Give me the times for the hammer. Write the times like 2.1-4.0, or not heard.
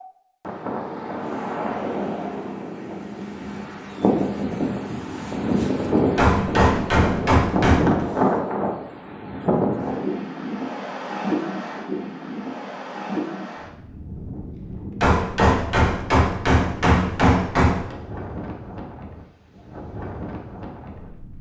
6.2-8.1, 15.0-17.9.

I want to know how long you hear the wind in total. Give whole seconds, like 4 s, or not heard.
21 s.